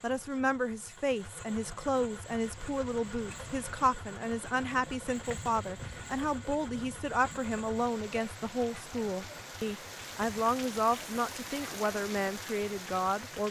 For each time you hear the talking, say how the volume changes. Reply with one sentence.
The talking can be heard from 0.0 to 13.4 s, at a steady volume.